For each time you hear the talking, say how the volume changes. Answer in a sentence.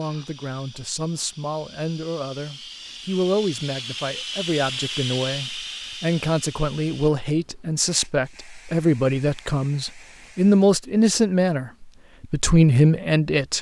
The talking can be heard from 0.0 to 13.5 s, getting louder.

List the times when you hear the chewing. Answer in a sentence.
The chewing can't be heard in this clip.